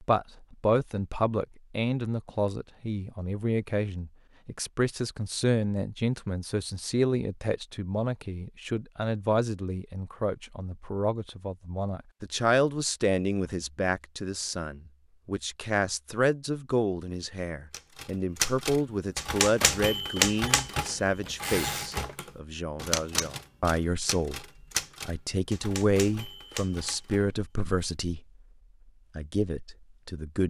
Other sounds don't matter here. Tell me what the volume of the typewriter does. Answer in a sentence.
The volume of the typewriter goes down.